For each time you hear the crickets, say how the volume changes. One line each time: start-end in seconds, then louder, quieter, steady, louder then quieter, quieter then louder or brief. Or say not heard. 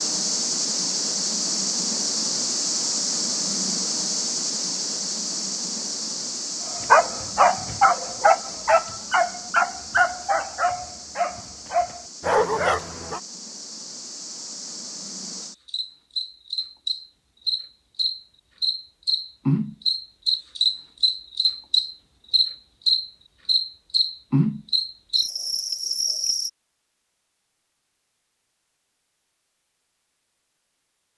0.0-26.5 quieter then louder.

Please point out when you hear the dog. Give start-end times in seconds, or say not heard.
6.8-13.2.